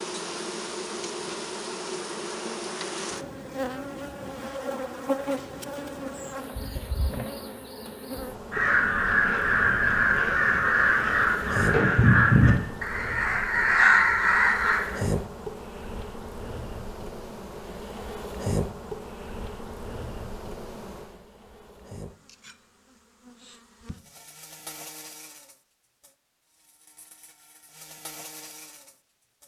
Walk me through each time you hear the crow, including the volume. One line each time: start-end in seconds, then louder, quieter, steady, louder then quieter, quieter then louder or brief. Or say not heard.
8.5-15.0 steady.